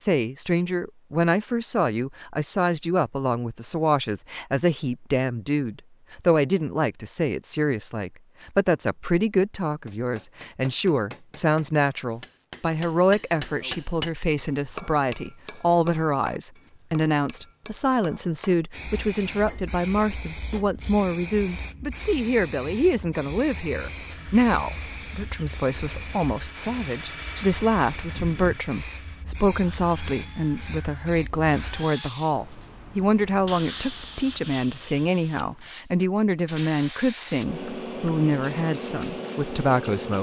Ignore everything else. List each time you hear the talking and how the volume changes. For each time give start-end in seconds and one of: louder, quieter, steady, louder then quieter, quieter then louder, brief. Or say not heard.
0.0-40.1 steady.